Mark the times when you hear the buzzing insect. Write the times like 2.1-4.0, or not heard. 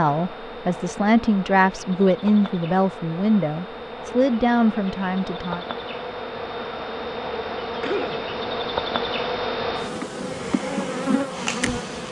0.0-12.0.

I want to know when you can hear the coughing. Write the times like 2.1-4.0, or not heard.
7.8-8.5.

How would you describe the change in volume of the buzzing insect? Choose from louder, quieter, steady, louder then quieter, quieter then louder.
louder.